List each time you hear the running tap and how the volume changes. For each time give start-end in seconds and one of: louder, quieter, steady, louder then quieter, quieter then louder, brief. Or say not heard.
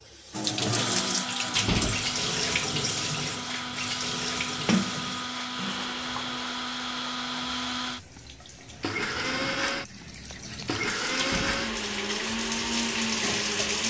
0.0-13.8 quieter then louder.